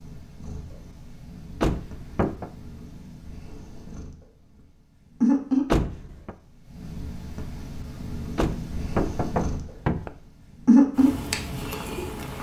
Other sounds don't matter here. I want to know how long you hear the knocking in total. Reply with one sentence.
The knocking can be heard for 3 seconds in total.